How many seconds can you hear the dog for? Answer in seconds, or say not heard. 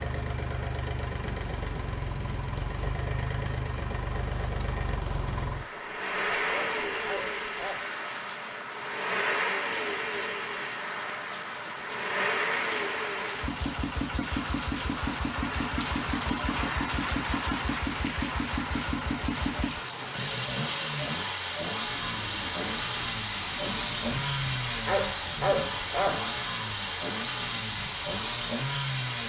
3 s.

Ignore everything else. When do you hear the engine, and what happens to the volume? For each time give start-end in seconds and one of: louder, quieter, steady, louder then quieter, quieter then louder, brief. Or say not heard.
0.0-29.2 steady.